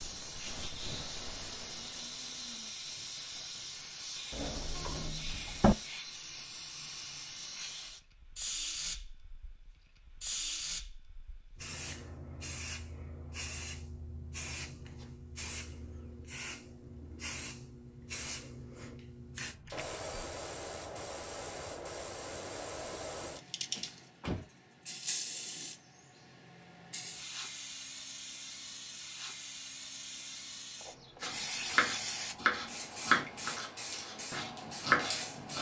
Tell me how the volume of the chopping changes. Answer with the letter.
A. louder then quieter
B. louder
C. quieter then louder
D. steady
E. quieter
C.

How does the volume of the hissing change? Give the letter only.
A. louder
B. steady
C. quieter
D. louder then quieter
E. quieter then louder
B.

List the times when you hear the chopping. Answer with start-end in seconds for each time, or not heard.
31.2-35.5.